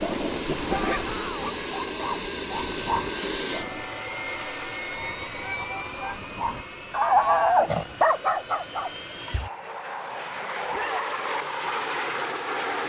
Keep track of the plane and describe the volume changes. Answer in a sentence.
The loudness of the plane goes down, then up.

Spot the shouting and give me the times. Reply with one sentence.
The shouting can be heard from 0.7 to 1.6 s, from 5.4 to 6.2 s and from 10.7 to 11.1 s.